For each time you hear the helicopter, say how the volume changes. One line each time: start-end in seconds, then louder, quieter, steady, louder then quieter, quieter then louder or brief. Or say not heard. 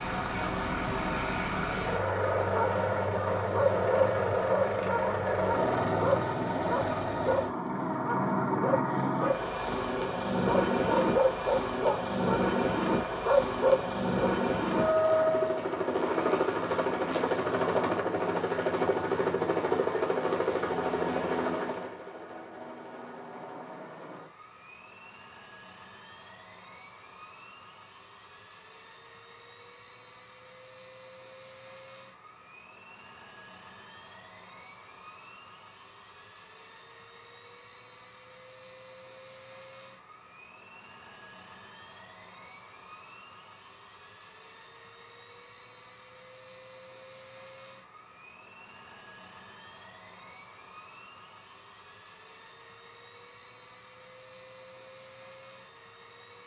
0.0-56.4 quieter.